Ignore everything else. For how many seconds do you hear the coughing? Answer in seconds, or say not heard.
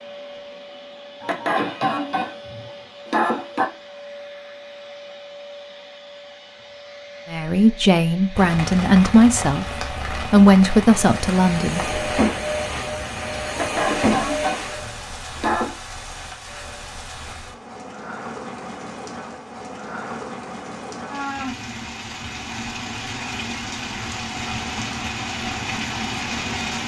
5 s.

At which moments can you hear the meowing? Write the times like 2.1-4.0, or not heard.
not heard.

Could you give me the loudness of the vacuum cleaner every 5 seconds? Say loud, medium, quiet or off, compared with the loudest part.
quiet, quiet, loud, off, off, off.